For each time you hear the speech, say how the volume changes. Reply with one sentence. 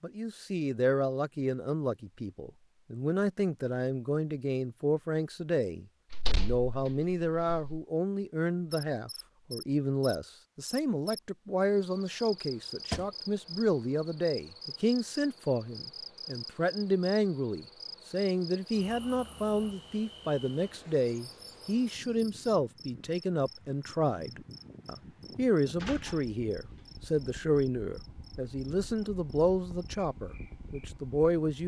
You can hear the speech from 0.0 to 31.6 s, at a steady volume.